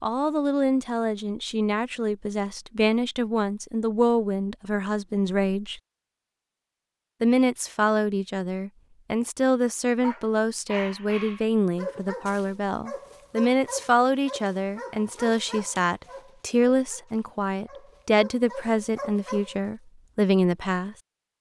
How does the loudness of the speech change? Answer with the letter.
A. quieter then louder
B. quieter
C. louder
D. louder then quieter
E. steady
E.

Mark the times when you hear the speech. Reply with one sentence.
The speech can be heard from 0.0 to 5.8 s and from 7.2 to 20.9 s.